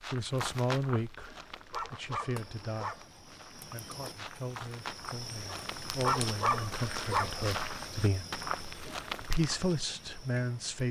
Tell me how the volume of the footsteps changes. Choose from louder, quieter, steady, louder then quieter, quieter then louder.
quieter then louder.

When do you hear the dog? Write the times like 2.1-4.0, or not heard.
1.1-3.1, 5.5-7.4.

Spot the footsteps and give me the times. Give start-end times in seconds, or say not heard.
0.0-9.8.